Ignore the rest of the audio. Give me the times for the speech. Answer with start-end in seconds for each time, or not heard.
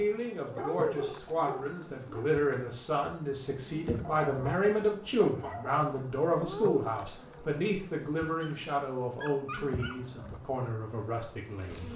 0.0-11.9.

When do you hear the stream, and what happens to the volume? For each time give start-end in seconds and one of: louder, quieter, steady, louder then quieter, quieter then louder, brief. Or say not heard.
not heard.